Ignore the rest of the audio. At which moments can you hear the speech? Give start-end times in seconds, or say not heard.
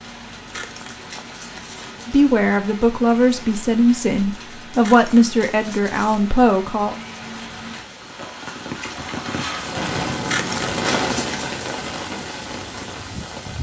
2.0-7.0.